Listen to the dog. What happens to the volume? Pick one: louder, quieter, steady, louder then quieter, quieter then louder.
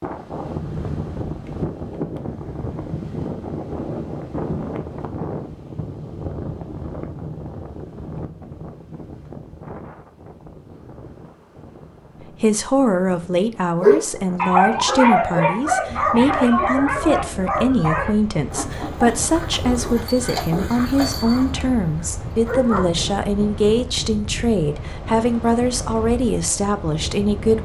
quieter.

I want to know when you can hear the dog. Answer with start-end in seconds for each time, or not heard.
13.8-22.9.